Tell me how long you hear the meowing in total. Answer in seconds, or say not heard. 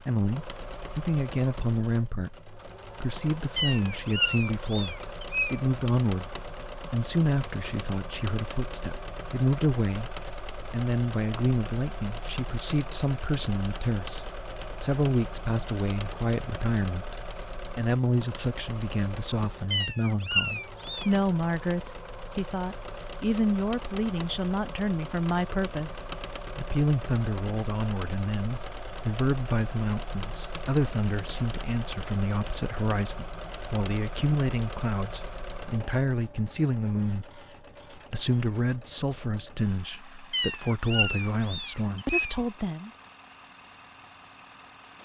6 s.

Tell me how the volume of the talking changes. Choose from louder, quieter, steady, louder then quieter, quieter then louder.
steady.